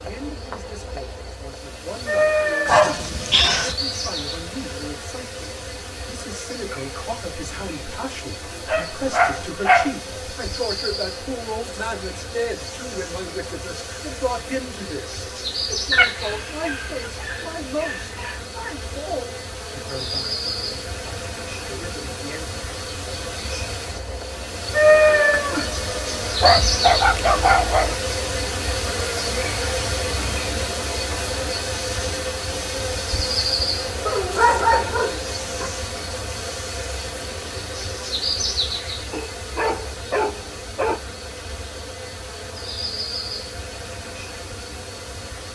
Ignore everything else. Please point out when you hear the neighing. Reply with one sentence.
You can't hear the neighing here.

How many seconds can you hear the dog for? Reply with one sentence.
You can hear the dog for 10 seconds altogether.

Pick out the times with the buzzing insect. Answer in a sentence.
The buzzing insect can be heard from 0.0 to 45.4 s.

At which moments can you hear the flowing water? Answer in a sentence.
The flowing water can't be heard in this clip.